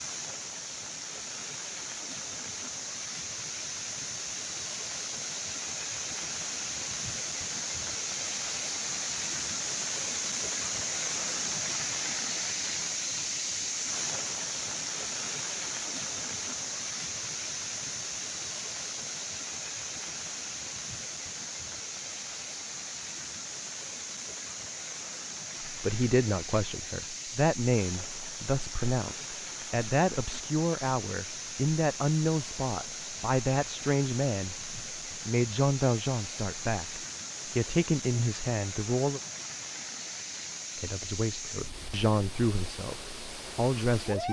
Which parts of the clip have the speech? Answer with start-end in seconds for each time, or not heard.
25.6-39.2, 40.8-44.2.